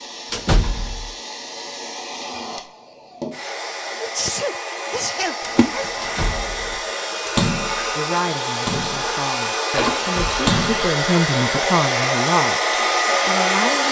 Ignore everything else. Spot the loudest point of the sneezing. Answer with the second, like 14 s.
4 s.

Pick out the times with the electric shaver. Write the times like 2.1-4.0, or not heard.
not heard.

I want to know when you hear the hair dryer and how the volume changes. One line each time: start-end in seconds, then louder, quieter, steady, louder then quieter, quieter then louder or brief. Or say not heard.
0.0-13.8 louder.